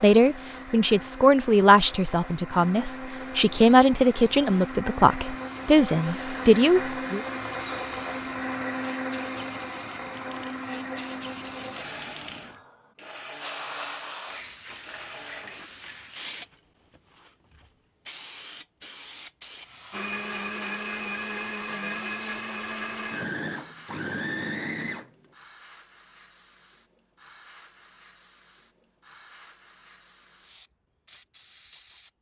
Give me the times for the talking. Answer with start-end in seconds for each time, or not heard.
0.0-7.2.